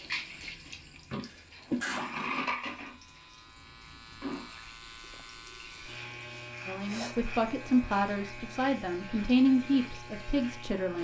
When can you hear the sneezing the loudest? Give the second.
2 s.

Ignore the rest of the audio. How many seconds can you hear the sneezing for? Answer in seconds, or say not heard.
2 s.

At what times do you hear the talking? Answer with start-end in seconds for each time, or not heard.
6.7-10.9.